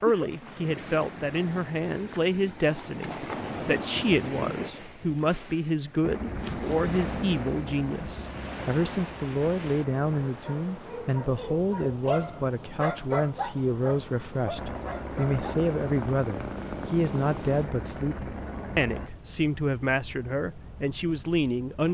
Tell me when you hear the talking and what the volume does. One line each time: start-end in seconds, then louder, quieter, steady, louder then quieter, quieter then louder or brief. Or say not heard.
0.0-21.8 steady.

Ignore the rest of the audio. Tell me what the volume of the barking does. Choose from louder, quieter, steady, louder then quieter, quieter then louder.
louder then quieter.